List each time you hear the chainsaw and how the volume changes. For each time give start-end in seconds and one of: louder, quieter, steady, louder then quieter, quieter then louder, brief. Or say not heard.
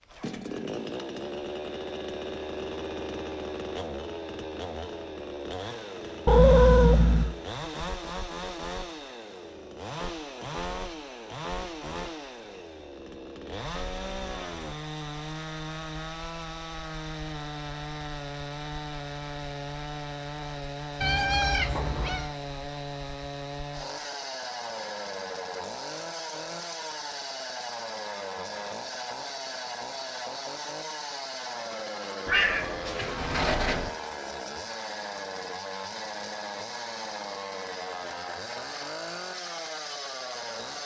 0.0-40.8 steady.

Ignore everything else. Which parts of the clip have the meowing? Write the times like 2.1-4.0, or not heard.
6.2-7.3, 21.0-22.3, 32.2-33.9.